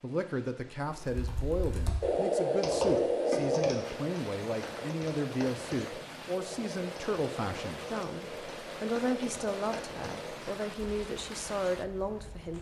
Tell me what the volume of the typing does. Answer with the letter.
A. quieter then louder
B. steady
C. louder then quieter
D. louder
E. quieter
E.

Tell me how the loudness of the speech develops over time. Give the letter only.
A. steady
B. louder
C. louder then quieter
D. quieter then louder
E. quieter
A.